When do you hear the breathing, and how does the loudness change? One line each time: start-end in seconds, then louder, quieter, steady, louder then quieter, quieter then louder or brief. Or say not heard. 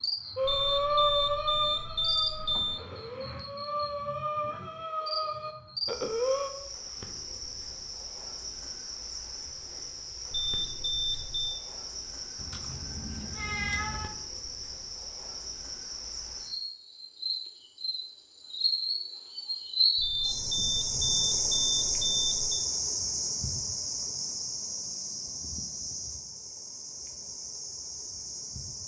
0.3-6.5 quieter then louder.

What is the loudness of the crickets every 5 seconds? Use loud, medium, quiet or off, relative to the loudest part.
medium, medium, medium, loud, loud, medium.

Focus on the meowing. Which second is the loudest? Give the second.
14 s.